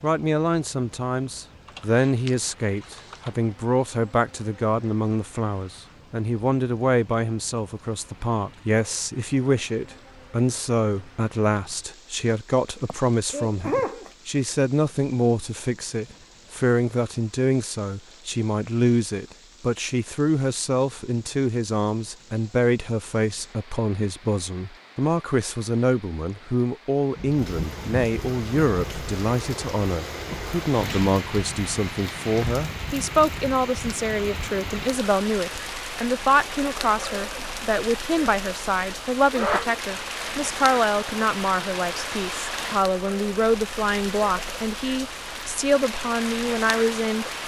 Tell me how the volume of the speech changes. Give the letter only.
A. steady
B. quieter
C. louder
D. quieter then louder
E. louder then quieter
A.